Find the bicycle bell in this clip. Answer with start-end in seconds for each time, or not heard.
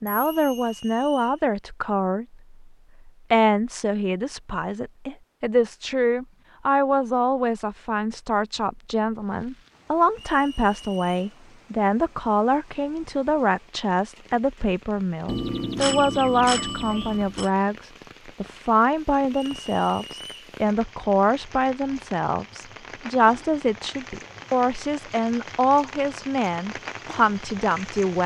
0.1-1.1, 15.2-17.4.